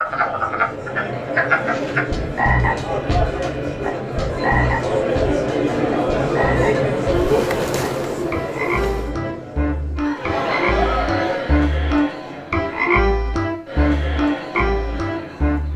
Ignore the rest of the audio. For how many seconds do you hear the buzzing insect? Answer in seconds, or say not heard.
2 s.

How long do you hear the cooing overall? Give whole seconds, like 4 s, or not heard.
not heard.